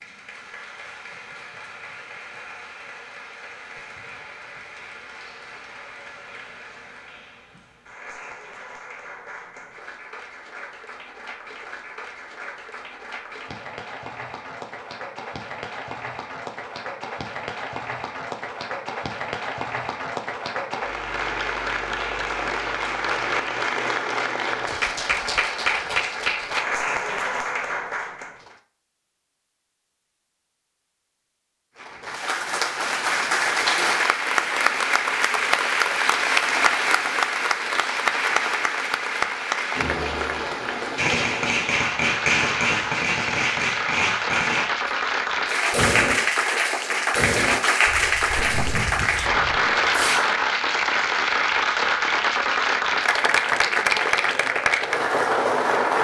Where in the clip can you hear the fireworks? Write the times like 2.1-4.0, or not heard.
41.0-44.9, 45.7-46.2, 47.1-50.2.